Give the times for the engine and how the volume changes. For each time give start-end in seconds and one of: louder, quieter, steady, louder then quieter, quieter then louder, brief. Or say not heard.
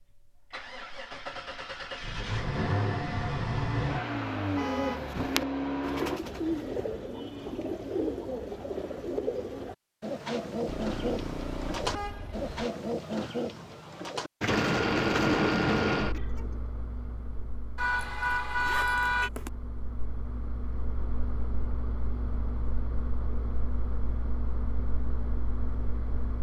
0.0-6.2 louder
14.4-26.3 quieter then louder.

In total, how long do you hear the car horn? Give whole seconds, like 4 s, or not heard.
4 s.